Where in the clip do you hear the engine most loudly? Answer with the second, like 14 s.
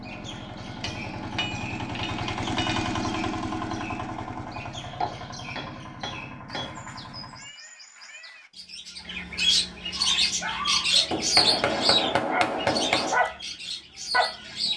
3 s.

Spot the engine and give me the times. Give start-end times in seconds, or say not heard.
0.0-7.5.